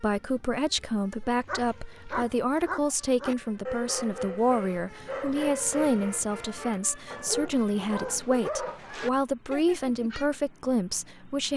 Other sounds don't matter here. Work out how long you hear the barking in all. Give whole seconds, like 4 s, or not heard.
9 s.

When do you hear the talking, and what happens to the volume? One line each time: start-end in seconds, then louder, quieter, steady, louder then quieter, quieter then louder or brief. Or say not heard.
0.0-11.5 steady.